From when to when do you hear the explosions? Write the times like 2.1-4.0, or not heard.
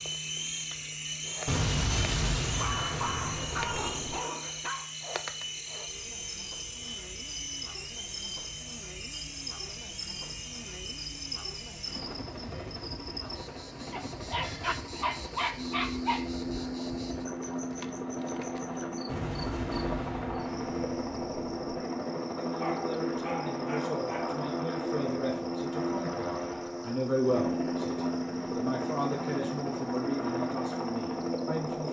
1.4-4.2, 19.1-21.8.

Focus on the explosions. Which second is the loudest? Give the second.
2 s.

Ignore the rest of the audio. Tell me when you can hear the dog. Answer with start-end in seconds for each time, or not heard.
2.5-4.9, 13.9-16.3, 22.6-24.4.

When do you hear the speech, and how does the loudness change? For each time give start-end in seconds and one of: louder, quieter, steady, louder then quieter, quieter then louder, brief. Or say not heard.
22.4-31.8 louder then quieter.